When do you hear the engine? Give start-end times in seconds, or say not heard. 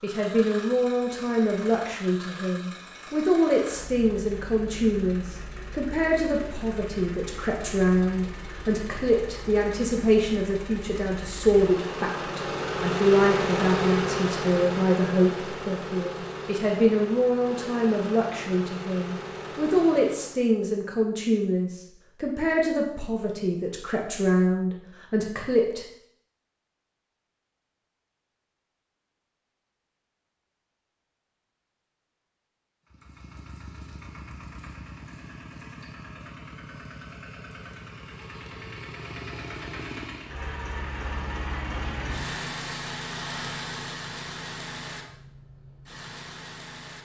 0.0-20.4, 32.9-47.0.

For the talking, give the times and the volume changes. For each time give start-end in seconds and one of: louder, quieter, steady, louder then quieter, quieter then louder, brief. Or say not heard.
0.0-25.8 steady.